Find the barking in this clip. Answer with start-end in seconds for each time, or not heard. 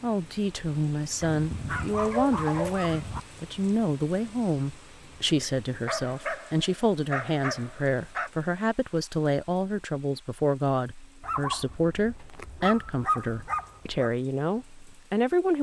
1.2-3.2, 5.8-8.3, 11.2-14.1.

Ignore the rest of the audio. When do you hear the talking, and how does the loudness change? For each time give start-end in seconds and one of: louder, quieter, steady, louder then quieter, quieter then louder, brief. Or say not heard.
0.0-15.5 steady.